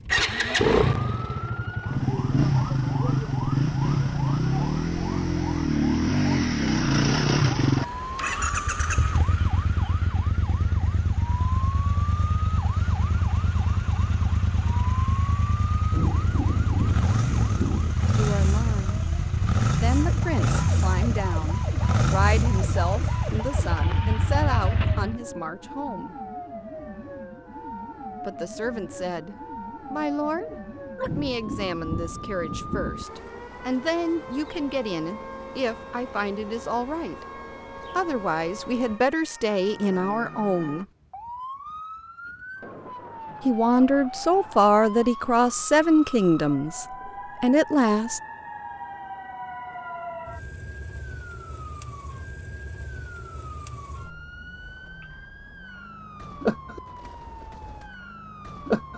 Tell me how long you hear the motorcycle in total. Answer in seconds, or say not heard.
25 s.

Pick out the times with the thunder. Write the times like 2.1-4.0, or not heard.
15.9-17.9, 31.1-33.0.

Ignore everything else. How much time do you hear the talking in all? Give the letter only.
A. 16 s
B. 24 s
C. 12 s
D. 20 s
B.